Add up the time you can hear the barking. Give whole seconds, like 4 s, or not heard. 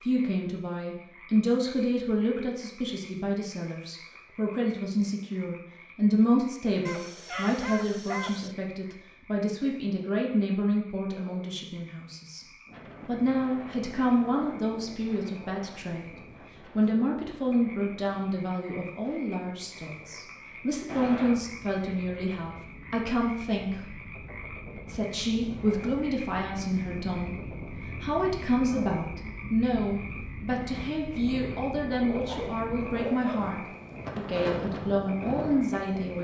3 s.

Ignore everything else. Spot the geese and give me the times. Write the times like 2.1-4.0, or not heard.
not heard.